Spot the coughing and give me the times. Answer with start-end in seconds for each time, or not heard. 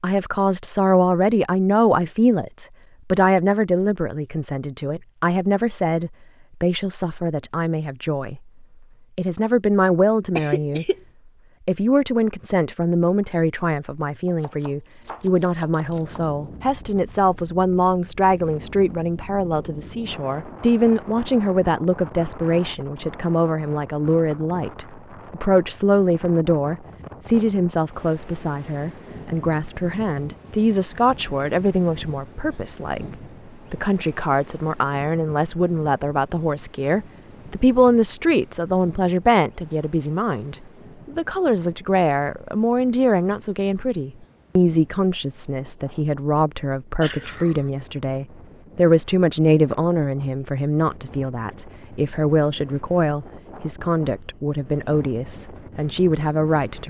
10.3-10.9, 47.0-47.7.